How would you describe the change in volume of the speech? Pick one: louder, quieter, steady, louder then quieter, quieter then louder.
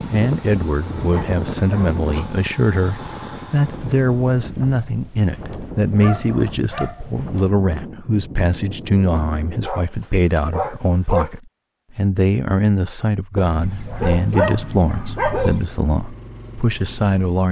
steady.